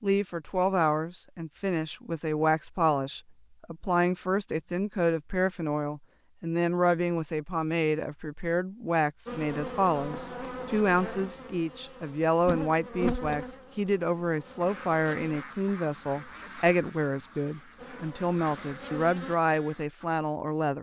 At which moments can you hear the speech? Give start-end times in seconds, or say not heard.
0.0-20.7.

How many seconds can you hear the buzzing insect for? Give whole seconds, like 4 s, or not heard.
8 s.